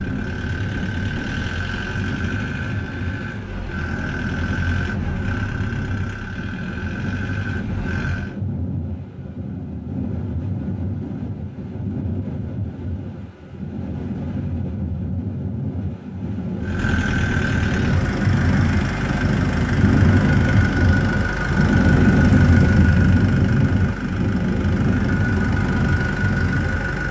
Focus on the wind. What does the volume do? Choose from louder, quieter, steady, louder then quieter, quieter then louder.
louder.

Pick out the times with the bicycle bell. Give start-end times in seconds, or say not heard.
not heard.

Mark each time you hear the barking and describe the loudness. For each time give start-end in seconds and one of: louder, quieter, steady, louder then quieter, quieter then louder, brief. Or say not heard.
not heard.